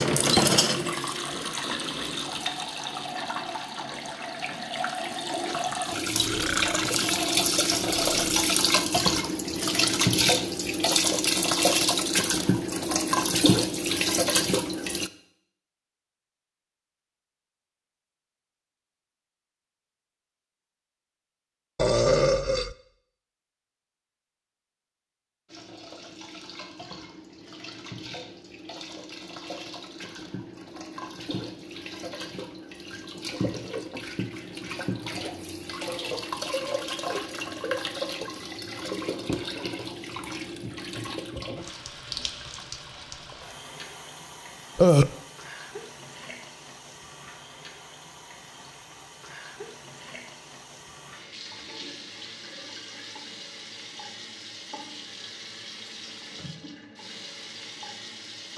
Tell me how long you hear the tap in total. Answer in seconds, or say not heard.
48 s.